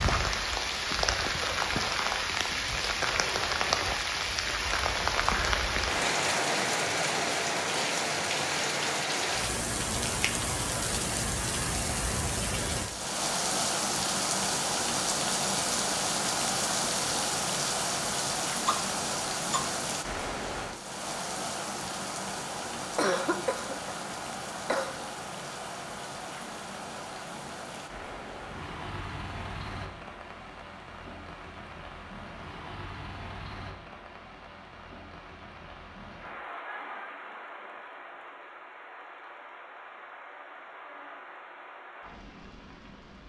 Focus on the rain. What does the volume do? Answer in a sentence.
The loudness of the rain goes down.